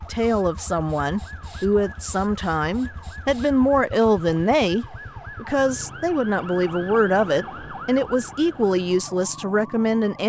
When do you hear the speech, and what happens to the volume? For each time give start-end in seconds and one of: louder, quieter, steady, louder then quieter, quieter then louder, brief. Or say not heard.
0.1-10.2 steady.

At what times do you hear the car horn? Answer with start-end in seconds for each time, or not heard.
not heard.